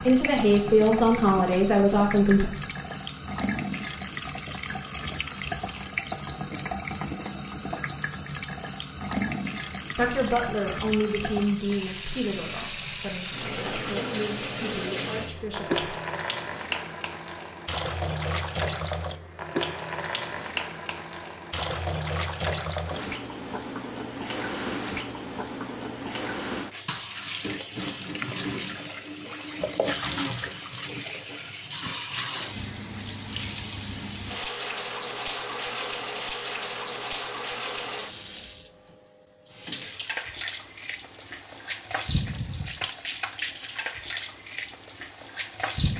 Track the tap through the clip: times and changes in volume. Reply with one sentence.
You can hear the tap from 0.0 to 45.9 s, at a steady volume.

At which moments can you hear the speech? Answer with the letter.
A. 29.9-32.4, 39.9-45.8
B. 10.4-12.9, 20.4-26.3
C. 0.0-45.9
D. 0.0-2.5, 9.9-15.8
D.